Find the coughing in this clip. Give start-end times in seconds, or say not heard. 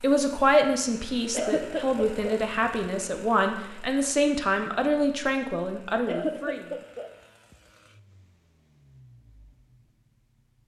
1.3-2.4, 6.0-7.1.